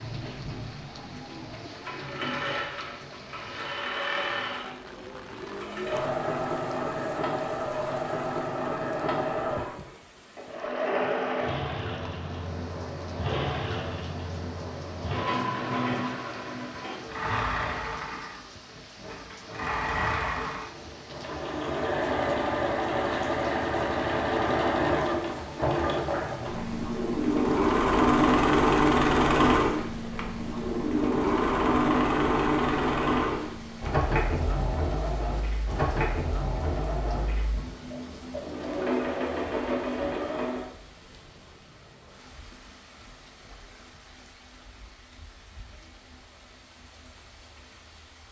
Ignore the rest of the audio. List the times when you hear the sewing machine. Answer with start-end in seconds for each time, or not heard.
0.0-40.7.